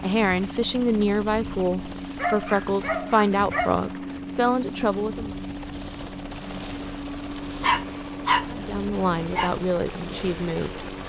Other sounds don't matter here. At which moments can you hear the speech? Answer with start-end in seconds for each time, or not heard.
0.0-5.3, 8.5-10.8.